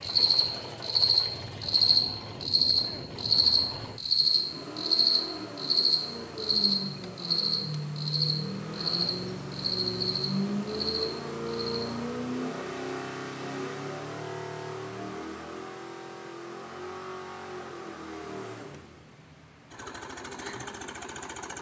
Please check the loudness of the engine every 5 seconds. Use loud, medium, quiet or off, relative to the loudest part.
medium, loud, loud, medium, medium.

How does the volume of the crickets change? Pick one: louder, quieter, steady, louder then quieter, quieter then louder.
quieter.